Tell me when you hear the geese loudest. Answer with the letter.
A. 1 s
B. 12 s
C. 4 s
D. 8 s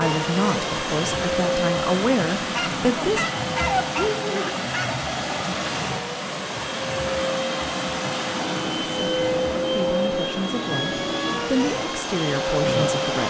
C.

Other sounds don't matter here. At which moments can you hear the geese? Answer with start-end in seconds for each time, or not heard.
2.4-5.0.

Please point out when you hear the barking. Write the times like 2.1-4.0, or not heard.
not heard.